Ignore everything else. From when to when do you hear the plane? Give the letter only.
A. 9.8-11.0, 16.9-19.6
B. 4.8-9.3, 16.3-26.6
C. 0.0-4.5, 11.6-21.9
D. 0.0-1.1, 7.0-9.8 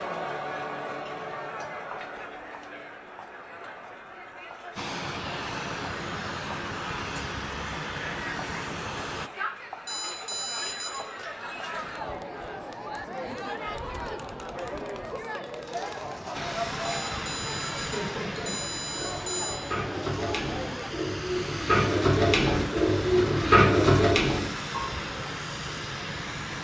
B.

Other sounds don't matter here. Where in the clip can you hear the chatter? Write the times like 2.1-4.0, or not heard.
0.0-20.9.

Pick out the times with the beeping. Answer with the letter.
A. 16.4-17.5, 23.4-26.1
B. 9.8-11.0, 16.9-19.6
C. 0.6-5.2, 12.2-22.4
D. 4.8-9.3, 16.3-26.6
B.